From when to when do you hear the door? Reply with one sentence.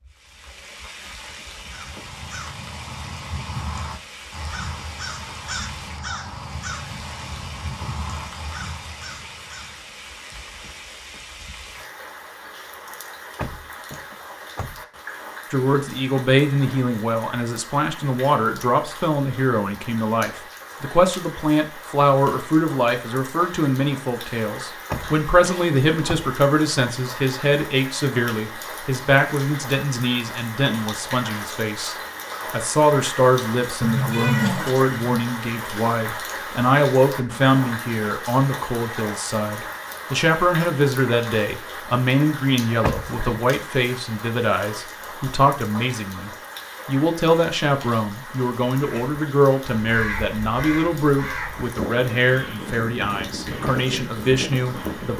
The door can be heard from 13.3 to 14.8 s, from 24.9 to 26.1 s and from 42.8 to 43.4 s.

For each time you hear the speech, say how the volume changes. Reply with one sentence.
You can hear the speech from 15.5 to 55.1 s, at a steady volume.